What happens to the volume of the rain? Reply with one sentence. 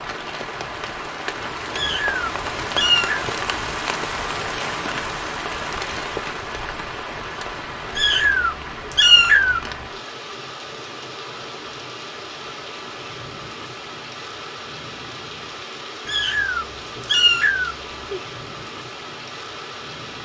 The volume of the rain goes down.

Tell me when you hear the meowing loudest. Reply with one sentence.
The loudest moment of the meowing is at 9 seconds.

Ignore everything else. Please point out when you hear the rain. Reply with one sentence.
The rain can be heard from 0.0 to 20.2 s.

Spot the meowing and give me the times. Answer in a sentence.
You can hear the meowing from 1.7 to 3.2 s, from 8.0 to 9.6 s and from 16.1 to 18.2 s.